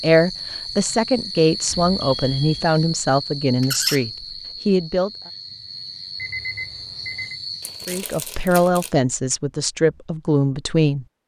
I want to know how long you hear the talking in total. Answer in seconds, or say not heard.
8 s.